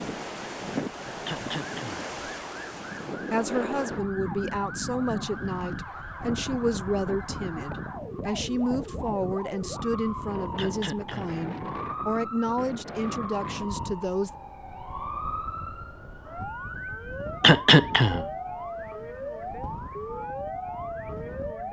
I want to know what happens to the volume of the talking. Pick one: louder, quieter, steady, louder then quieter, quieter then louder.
steady.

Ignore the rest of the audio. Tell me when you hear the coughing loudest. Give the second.
18 s.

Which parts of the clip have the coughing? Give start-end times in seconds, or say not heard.
1.2-2.0, 10.6-11.3, 17.4-18.2.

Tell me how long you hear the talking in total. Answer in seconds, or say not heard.
11 s.